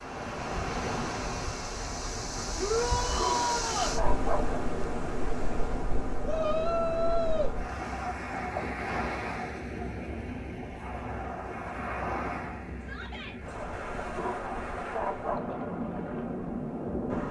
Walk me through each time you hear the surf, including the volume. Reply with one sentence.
The surf can be heard from 0.0 to 17.2 s, at a steady volume.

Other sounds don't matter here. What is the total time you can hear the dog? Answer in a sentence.
The dog can be heard for 3 seconds in total.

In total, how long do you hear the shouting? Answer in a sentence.
You can hear the shouting for 3 seconds altogether.